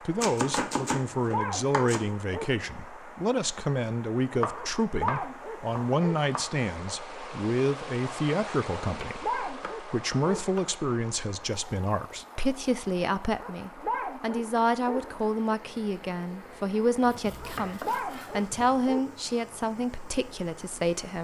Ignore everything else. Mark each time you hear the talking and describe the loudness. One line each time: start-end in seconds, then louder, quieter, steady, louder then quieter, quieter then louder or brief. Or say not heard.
0.1-21.1 steady.